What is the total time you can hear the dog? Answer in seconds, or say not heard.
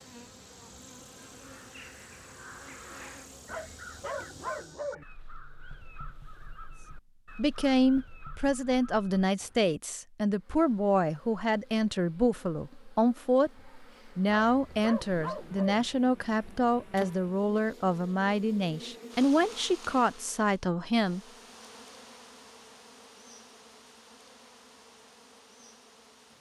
3 s.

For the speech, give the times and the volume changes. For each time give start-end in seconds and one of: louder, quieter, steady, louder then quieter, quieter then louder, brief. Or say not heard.
7.3-21.2 steady.